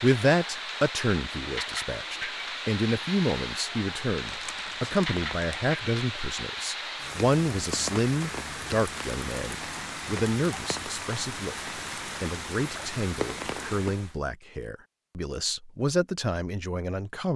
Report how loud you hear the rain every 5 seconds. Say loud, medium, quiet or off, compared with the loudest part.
loud, loud, loud, off.